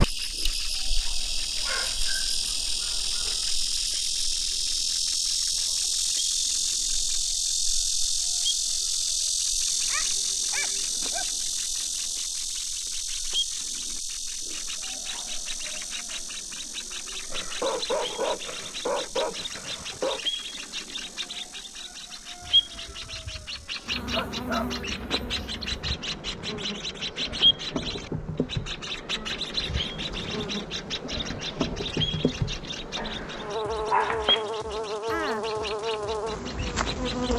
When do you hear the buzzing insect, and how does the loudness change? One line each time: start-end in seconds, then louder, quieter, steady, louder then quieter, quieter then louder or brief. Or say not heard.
0.0-37.3 quieter then louder.